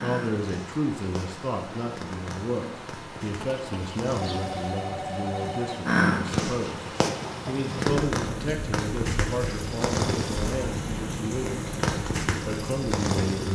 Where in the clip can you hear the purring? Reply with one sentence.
The purring can be heard from 0.0 to 13.4 s.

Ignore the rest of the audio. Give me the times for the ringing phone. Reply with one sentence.
The ringing phone can be heard from 3.4 to 5.8 s.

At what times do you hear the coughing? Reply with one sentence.
The coughing can't be heard in this clip.